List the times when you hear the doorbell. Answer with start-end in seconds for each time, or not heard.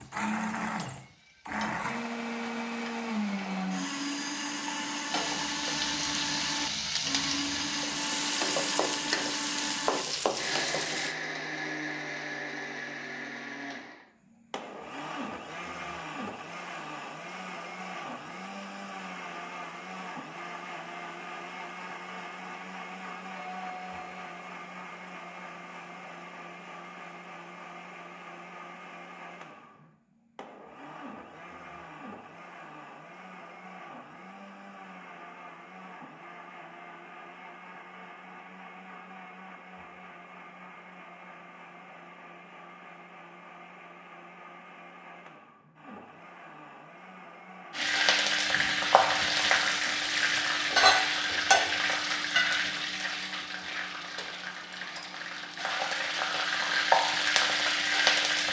23.4-24.3.